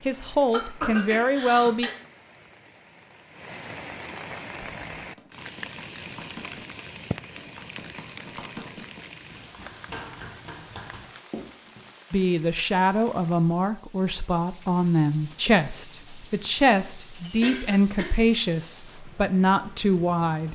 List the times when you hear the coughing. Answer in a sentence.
The coughing can be heard from 0.5 to 1.9 s and from 17.2 to 18.1 s.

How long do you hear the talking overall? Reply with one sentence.
You can hear the talking for 10 seconds altogether.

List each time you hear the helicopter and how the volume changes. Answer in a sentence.
The helicopter can't be heard in this clip.